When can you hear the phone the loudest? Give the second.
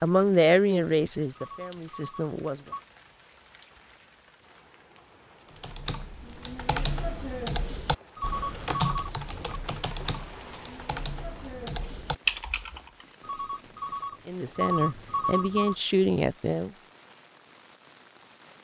15 s.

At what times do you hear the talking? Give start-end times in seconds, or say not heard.
0.0-2.6, 14.2-16.7.